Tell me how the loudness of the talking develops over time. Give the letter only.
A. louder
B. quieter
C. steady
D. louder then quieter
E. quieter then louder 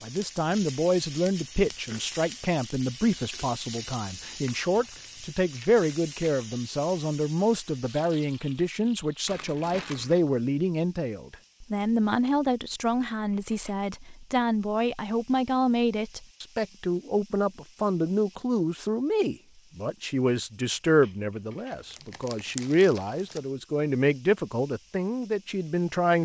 C.